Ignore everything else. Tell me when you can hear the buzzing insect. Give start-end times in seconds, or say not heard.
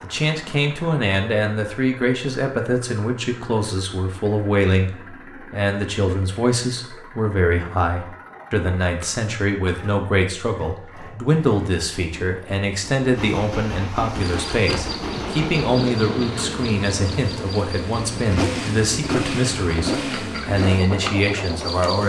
14.1-22.0.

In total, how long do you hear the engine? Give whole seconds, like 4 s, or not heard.
22 s.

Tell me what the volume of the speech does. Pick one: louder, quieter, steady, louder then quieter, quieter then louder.
steady.